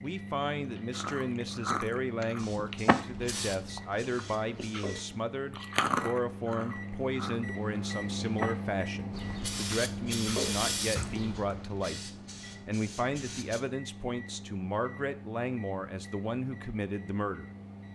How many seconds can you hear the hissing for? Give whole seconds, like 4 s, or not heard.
7 s.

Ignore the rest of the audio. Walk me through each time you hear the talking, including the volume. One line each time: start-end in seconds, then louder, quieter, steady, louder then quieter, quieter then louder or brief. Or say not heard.
0.0-17.5 steady.